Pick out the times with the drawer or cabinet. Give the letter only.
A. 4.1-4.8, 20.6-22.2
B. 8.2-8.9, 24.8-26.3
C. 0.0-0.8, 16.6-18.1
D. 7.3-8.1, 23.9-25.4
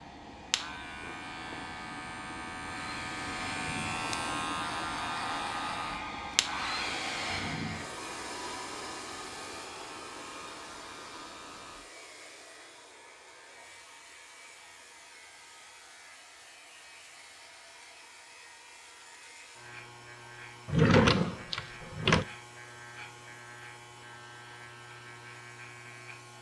A.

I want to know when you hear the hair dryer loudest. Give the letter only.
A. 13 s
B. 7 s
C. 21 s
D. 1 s
B.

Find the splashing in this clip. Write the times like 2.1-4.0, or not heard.
not heard.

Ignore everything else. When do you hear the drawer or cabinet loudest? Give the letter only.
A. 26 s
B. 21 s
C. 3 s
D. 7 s
B.